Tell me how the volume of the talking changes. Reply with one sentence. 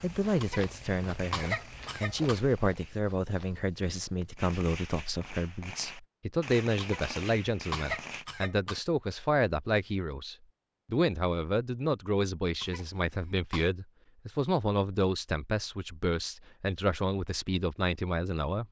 The volume of the talking stays about the same.